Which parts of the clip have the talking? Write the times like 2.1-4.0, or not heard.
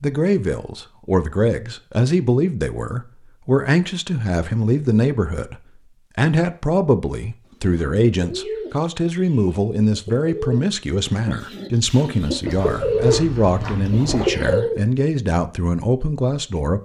0.0-5.5, 6.2-16.8.